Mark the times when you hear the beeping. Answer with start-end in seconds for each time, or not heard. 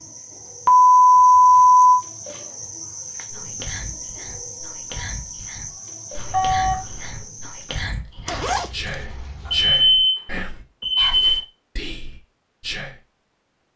0.7-2.0, 6.2-7.2, 9.4-11.4.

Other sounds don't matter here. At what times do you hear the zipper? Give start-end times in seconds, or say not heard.
8.2-9.8.